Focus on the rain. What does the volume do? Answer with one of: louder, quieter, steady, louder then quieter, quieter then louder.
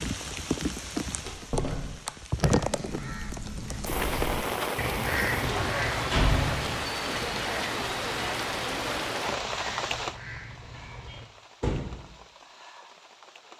quieter.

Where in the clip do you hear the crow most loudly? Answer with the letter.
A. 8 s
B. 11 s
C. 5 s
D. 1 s
C.